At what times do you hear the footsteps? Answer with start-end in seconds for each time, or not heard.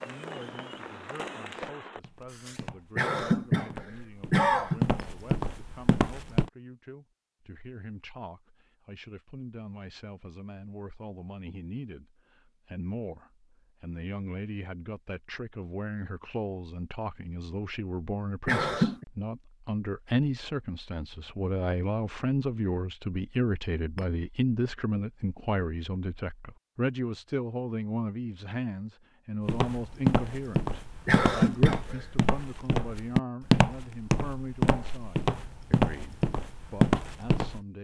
0.0-6.5, 29.4-37.6.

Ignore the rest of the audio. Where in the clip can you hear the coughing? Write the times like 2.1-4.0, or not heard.
3.0-4.8, 18.4-19.1, 31.1-32.0.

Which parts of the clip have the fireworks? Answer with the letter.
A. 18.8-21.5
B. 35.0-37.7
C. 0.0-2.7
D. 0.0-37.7
C.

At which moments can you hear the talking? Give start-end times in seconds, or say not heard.
0.0-37.7.